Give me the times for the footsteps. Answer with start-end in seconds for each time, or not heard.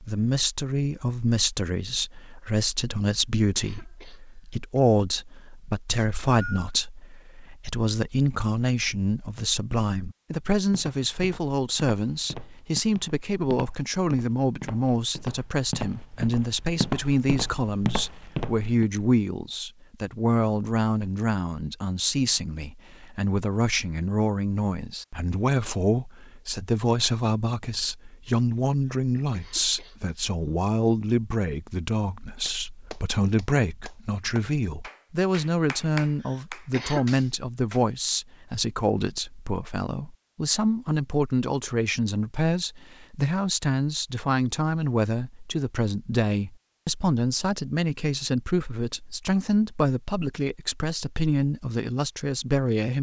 10.7-18.9.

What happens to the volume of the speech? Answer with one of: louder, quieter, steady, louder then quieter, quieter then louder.
steady.